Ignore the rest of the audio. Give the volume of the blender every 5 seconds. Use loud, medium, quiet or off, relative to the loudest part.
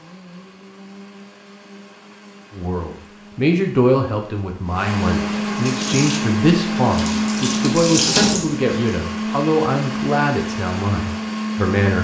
quiet, loud, loud.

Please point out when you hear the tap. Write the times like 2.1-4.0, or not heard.
5.5-8.9.